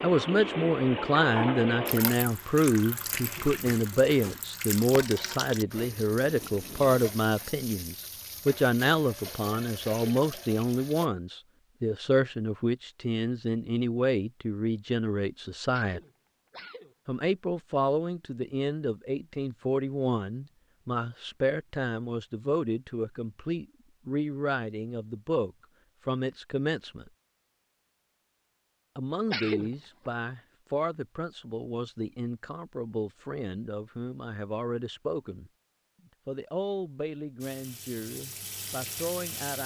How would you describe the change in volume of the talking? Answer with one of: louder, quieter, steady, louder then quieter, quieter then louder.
quieter.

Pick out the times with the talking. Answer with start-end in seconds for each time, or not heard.
0.0-16.0, 17.1-27.1, 28.9-35.5, 36.2-39.6.